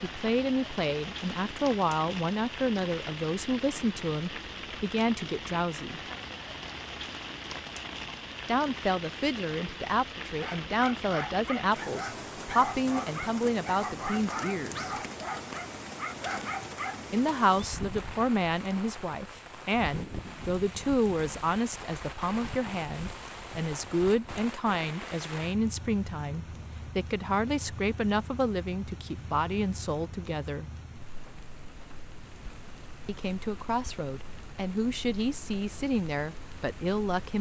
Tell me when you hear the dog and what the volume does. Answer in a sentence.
You can hear the dog from 10.3 to 17.1 s, at a steady volume.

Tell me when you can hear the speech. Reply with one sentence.
The speech can be heard from 0.0 to 6.0 s, from 8.4 to 14.9 s, from 17.1 to 30.7 s and from 33.0 to 37.3 s.